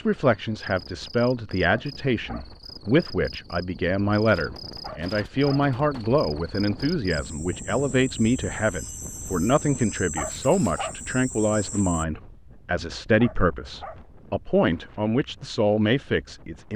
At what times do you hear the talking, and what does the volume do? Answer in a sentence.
You can hear the talking from 0.0 to 16.7 s, at a steady volume.